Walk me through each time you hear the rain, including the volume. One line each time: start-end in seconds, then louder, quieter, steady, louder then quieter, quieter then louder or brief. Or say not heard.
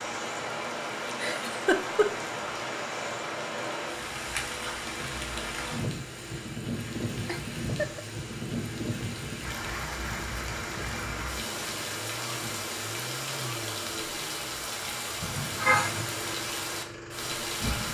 0.0-17.8 steady.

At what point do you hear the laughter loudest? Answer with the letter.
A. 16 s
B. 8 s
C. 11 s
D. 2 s
A.